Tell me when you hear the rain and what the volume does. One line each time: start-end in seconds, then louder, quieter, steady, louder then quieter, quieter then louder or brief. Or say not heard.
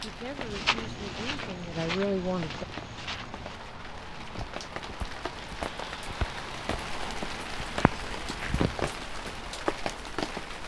0.0-10.6 louder.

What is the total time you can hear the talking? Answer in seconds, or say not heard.
3 s.